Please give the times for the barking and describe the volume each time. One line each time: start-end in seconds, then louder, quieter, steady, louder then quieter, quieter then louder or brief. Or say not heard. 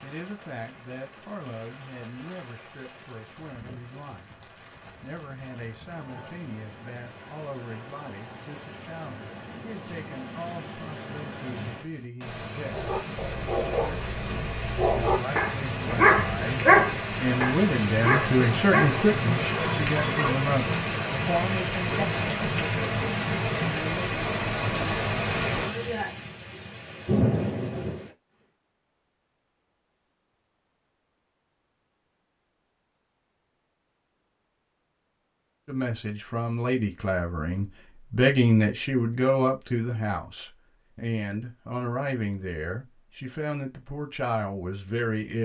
12.7-20.4 louder then quieter.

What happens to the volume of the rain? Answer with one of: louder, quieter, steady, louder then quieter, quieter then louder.
louder.